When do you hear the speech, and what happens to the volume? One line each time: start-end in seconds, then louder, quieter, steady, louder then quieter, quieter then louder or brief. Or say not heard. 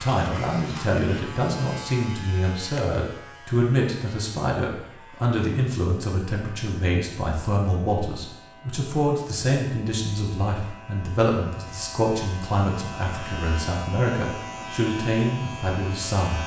0.0-16.4 steady.